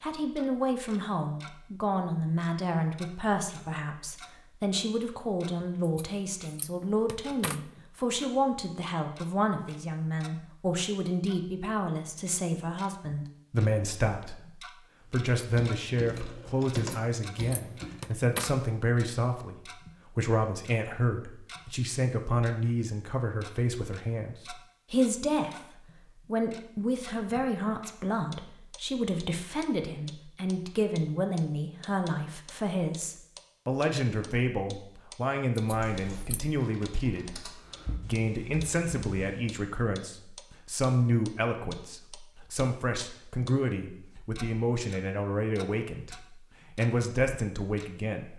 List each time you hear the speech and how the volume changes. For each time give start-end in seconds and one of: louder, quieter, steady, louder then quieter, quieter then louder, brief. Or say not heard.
0.0-48.3 steady.